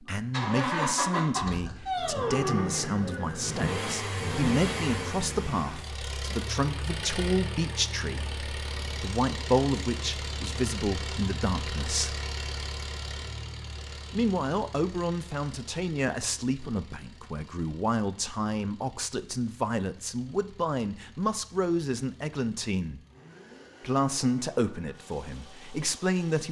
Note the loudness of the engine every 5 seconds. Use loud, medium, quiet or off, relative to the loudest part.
loud, medium, medium, quiet, quiet, quiet.